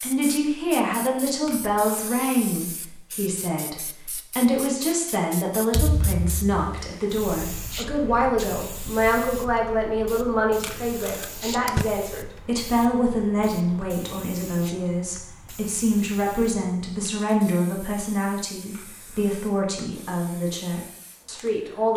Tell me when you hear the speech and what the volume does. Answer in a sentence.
You can hear the speech from 0.0 to 21.9 s, at a steady volume.